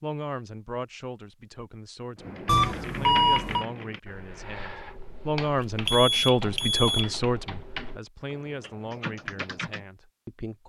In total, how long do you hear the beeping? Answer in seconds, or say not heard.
3 s.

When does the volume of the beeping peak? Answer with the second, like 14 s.
3 s.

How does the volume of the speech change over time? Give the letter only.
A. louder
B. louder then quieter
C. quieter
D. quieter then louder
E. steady
B.